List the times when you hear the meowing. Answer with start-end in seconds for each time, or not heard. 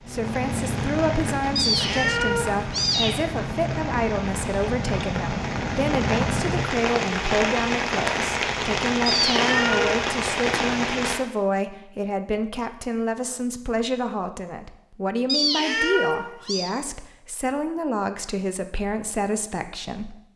1.6-3.1, 9.1-9.9, 15.2-16.7.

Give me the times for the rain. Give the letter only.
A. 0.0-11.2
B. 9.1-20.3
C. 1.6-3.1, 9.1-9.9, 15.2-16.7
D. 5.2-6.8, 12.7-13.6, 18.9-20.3
A.